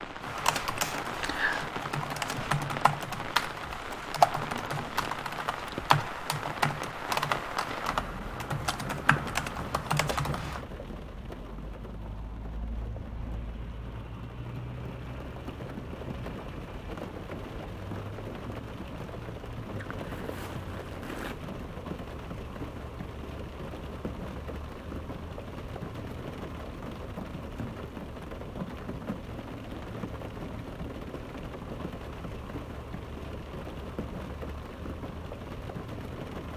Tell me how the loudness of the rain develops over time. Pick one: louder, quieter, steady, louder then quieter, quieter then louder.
steady.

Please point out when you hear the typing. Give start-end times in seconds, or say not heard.
0.2-10.7.